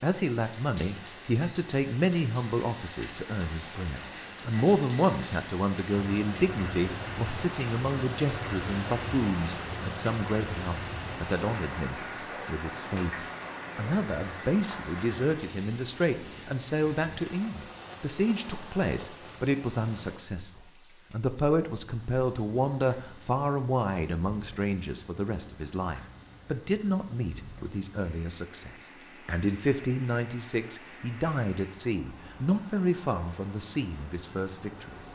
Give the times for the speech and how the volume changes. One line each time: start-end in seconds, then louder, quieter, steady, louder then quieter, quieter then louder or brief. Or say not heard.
0.0-35.0 steady.